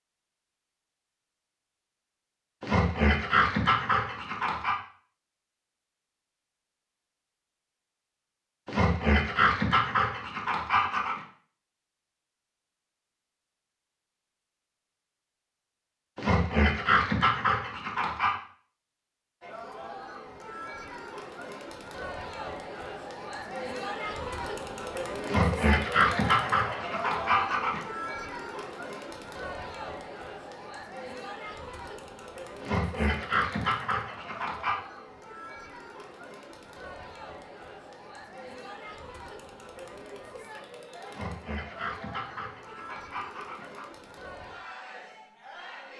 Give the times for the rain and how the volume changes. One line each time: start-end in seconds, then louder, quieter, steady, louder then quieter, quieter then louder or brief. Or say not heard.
not heard.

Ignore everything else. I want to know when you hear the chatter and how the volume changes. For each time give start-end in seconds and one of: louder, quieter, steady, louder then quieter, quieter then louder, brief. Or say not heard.
19.4-45.9 quieter.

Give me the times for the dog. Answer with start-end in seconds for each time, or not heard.
2.6-4.8, 8.7-11.2, 16.1-18.4, 25.2-27.8, 32.6-34.8, 41.1-43.9.